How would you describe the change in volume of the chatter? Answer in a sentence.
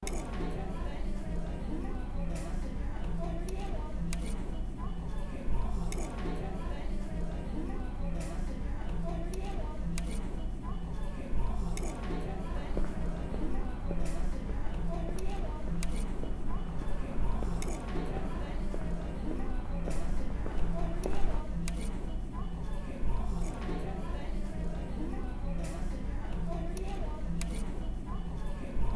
The volume of the chatter stays about the same.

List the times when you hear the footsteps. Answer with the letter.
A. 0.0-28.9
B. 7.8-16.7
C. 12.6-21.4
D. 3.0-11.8
C.